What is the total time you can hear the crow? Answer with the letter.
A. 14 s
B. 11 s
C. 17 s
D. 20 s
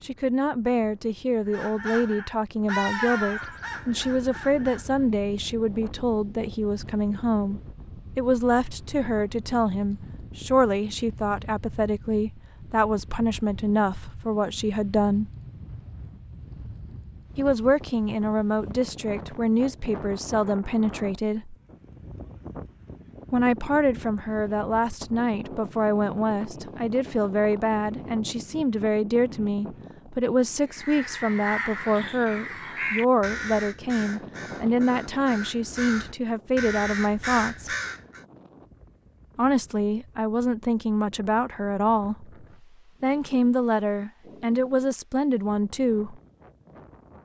B.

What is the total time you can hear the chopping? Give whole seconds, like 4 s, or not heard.
not heard.